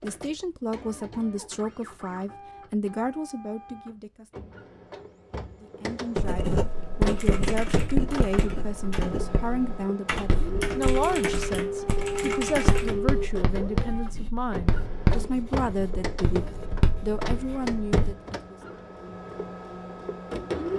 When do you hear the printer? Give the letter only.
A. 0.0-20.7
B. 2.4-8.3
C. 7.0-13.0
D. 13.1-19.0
A.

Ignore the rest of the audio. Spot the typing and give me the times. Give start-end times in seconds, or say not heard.
7.0-13.0.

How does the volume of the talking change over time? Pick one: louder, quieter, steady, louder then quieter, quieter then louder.
steady.